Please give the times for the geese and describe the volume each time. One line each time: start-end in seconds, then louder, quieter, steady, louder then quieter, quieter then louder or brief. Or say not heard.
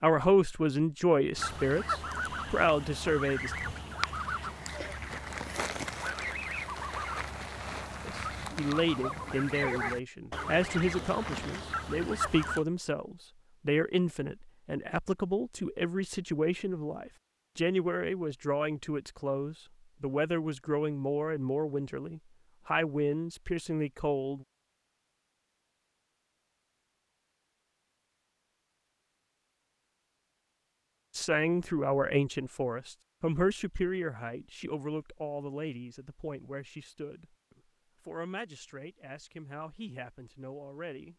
1.3-12.7 steady.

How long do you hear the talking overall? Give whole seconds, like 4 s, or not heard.
30 s.